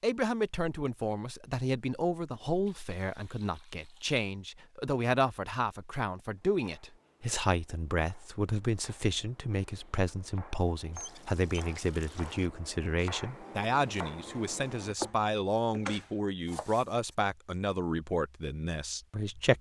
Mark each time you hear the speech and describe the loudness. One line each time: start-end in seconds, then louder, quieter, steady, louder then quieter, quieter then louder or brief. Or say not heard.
0.0-19.5 steady.